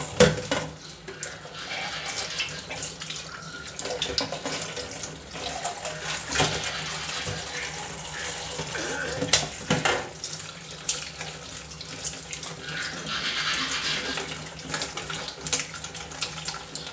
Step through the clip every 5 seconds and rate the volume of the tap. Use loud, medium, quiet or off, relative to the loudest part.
loud, loud, medium, loud.